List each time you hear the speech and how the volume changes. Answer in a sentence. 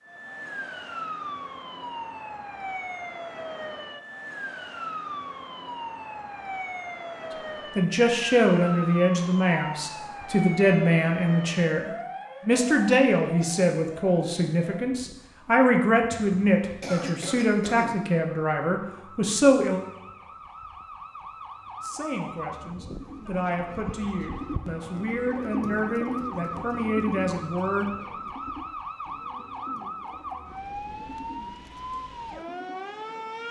You can hear the speech from 7.8 to 19.8 s, at a steady volume; and from 21.8 to 27.9 s, getting louder.